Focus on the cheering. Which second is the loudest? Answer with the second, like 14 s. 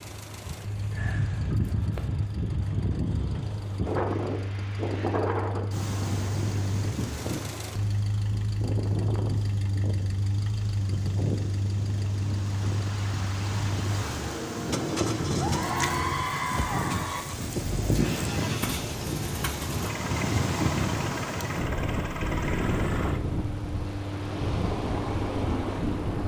16 s.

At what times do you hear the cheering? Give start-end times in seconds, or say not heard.
15.3-17.2.